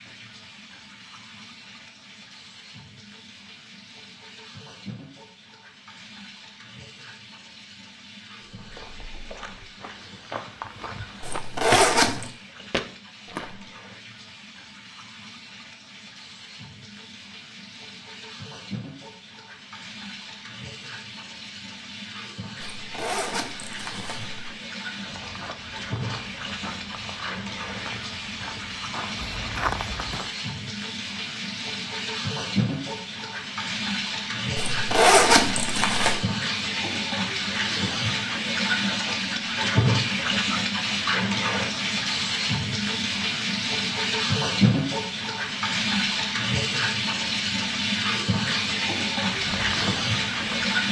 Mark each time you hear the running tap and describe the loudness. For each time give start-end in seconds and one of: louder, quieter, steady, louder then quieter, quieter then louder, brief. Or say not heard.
0.0-50.8 louder.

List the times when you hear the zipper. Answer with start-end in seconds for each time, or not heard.
11.2-12.2, 22.6-24.5, 34.5-36.2.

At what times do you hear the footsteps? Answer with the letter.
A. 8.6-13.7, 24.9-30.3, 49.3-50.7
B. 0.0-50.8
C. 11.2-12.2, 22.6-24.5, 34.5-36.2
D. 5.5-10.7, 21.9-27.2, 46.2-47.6
A.